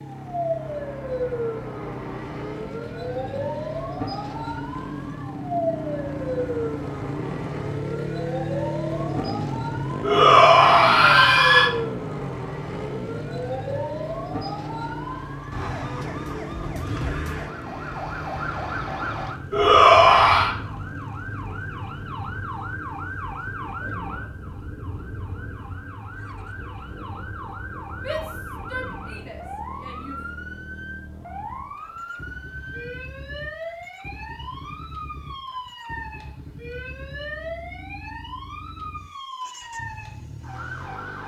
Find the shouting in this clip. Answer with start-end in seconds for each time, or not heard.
10.0-11.7, 19.5-20.5, 27.9-30.2.